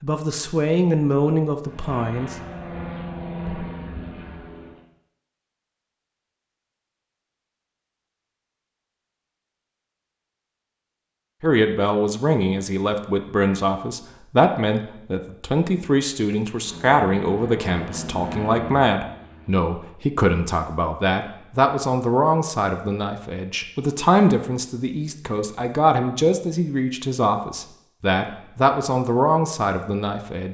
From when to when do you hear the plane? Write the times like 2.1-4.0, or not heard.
1.6-4.8, 16.6-19.6.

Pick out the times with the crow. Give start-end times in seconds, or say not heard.
not heard.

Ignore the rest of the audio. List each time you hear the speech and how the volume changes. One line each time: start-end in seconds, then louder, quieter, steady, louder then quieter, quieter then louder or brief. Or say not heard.
0.0-2.4 brief
11.4-30.4 steady.